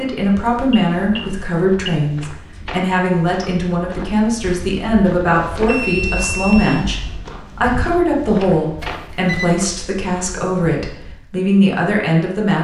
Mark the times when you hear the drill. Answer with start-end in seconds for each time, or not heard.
not heard.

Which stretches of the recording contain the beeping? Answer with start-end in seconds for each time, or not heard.
0.7-2.0, 5.7-6.8, 8.8-9.6.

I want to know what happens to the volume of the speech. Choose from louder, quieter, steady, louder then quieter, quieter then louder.
steady.